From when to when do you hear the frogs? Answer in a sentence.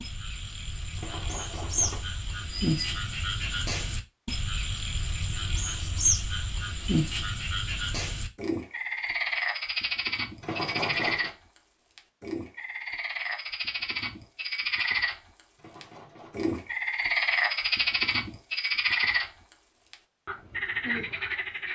You can hear the frogs from 0.0 to 21.7 s.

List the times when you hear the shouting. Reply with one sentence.
The shouting can't be heard in this clip.